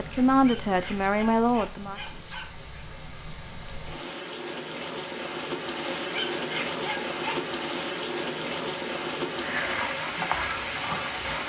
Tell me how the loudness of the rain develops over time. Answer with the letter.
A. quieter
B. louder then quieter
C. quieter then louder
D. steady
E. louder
E.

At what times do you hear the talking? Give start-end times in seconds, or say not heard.
0.0-2.0.